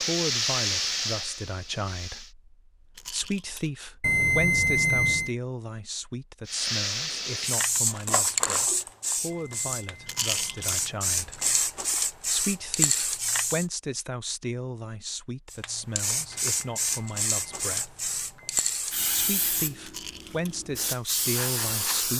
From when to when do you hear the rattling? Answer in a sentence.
You can hear the rattling from 3.0 to 3.7 s, from 10.1 to 10.8 s and from 19.8 to 20.6 s.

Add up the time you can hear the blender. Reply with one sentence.
You can't hear the blender here.